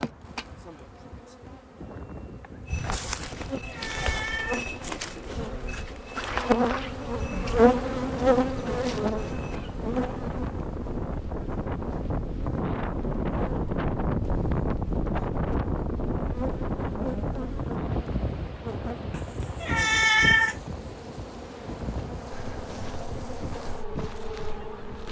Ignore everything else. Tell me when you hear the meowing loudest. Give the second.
20 s.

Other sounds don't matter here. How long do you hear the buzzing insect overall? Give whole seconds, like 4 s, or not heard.
25 s.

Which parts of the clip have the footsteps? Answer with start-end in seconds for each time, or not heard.
2.6-9.6, 21.9-25.0.